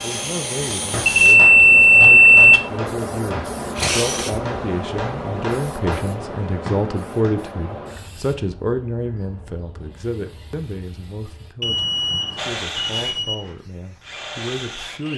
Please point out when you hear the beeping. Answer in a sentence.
The beeping can be heard from 1.1 to 2.5 s and from 11.6 to 13.3 s.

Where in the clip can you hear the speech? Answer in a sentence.
You can hear the speech from 0.0 to 15.1 s.